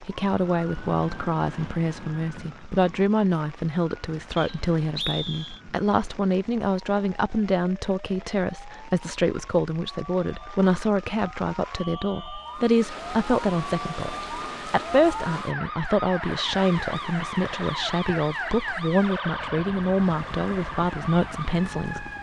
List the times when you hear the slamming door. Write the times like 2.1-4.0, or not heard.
not heard.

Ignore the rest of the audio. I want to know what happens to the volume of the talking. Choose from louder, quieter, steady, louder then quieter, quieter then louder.
steady.